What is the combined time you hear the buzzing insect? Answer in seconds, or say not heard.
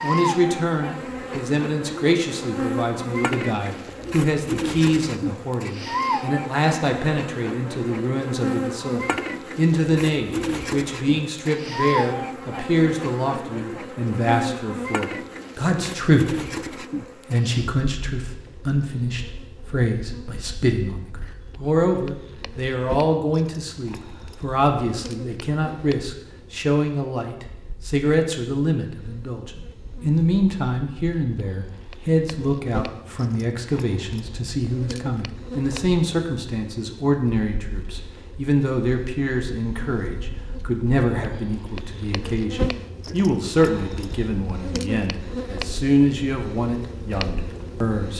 48 s.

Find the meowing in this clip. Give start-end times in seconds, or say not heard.
not heard.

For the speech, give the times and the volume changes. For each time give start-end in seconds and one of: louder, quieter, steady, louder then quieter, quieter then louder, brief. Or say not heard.
0.0-16.6 steady
17.3-48.1 steady.